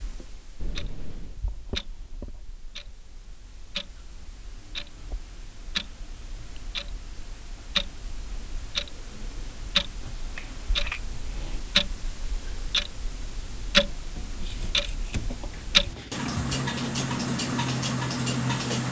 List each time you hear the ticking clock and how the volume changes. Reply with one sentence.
The ticking clock can be heard from 0.0 to 18.8 s, getting louder.